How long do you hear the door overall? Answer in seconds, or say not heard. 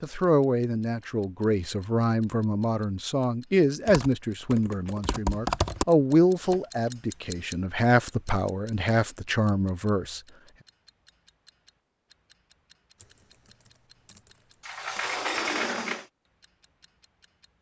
2 s.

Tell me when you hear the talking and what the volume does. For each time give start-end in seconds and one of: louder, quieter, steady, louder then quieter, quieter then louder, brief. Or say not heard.
0.0-10.2 steady.